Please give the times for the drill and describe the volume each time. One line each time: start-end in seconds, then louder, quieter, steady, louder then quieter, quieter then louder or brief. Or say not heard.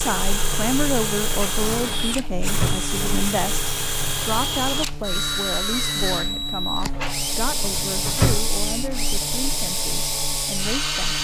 0.0-11.1 steady.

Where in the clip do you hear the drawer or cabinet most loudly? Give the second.
8 s.